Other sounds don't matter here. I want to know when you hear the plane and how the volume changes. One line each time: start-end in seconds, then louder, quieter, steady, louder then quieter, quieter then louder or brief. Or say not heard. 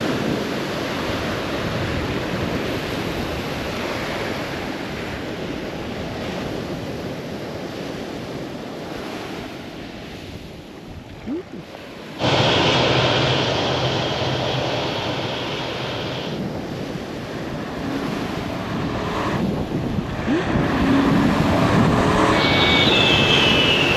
12.2-23.9 quieter then louder.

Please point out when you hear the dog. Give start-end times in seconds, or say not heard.
not heard.